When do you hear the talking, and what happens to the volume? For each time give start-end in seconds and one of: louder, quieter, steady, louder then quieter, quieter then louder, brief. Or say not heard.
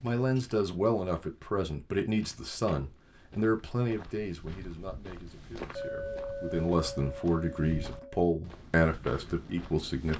0.0-10.1 quieter then louder.